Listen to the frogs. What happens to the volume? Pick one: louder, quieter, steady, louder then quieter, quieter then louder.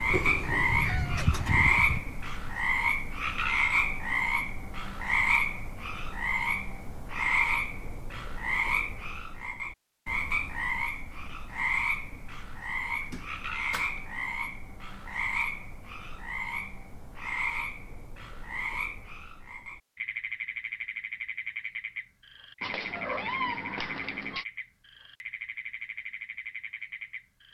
quieter.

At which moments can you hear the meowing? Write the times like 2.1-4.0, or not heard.
0.1-2.0, 13.0-14.0, 22.6-24.4.